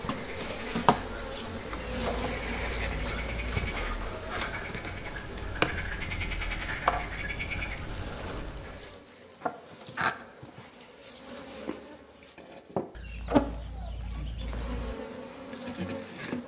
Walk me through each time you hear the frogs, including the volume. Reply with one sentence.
The frogs can be heard from 0.0 to 8.9 s, getting louder.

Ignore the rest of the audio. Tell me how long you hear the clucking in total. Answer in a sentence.
You can hear the clucking for 4 seconds altogether.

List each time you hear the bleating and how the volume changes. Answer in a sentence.
You can't hear the bleating here.